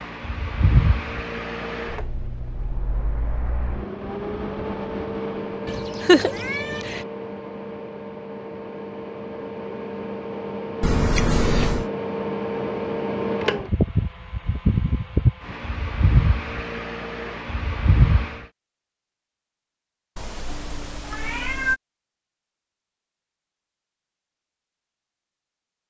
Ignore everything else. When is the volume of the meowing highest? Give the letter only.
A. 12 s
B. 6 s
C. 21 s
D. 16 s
B.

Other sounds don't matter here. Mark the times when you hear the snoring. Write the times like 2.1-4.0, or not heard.
not heard.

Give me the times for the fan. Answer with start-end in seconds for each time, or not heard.
0.0-18.4.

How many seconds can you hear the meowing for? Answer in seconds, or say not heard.
4 s.